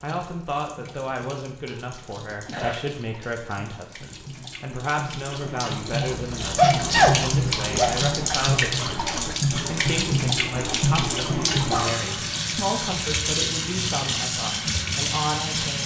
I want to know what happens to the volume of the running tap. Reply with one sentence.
The loudness of the running tap goes up.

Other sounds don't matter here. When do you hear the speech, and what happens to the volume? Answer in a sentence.
The speech can be heard from 0.0 to 15.8 s, at a steady volume.